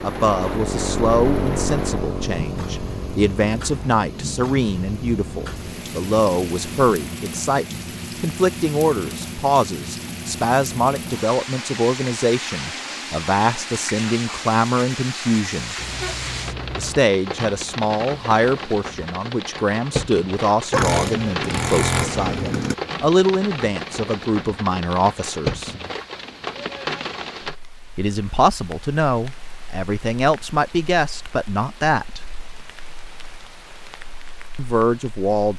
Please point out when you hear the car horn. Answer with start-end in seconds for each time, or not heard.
15.8-17.0.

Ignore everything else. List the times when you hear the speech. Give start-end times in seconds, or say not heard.
0.0-15.8, 16.8-25.8, 27.9-32.2, 34.5-35.5.